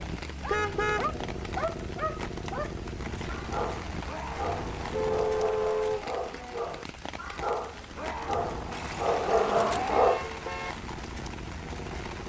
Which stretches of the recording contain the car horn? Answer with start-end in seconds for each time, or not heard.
0.5-1.1, 4.9-6.0, 8.7-10.8.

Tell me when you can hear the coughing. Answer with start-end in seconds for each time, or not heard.
not heard.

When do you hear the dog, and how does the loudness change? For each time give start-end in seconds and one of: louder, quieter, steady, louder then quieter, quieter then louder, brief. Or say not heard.
0.4-10.3 louder.